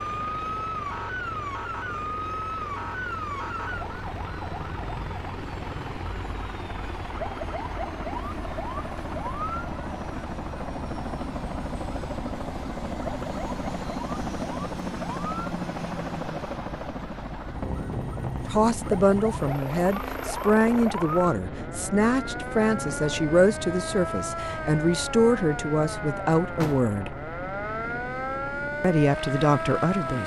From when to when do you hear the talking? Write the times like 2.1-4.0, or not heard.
18.4-27.1, 28.8-30.2.